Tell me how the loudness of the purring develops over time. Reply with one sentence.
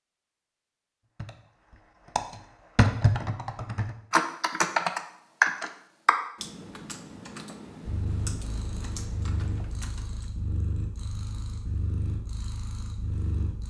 The loudness of the purring stays about the same.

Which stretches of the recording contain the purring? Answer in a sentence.
The purring can be heard from 7.8 to 13.6 s.